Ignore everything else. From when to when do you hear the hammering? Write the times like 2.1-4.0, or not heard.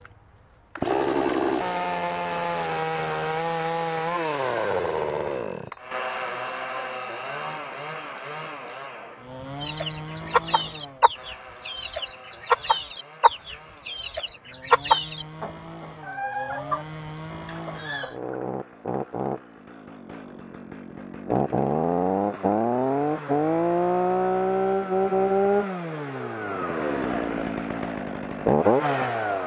not heard.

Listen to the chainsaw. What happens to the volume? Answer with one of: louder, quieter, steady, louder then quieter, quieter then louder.
quieter then louder.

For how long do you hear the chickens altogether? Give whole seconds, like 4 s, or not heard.
9 s.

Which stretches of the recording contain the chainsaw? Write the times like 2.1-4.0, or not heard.
0.0-29.4.